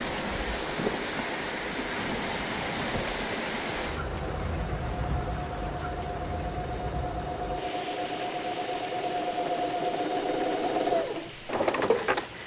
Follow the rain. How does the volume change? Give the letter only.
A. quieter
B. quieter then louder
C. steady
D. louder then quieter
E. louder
A.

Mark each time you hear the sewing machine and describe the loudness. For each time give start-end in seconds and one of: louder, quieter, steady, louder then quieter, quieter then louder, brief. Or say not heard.
0.0-12.4 louder.